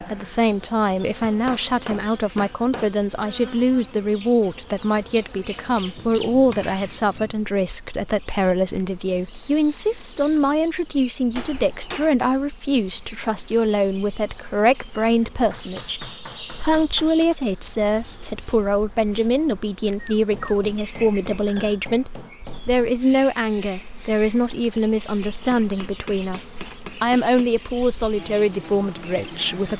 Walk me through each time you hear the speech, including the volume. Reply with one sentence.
The speech can be heard from 0.0 to 29.7 s, at a steady volume.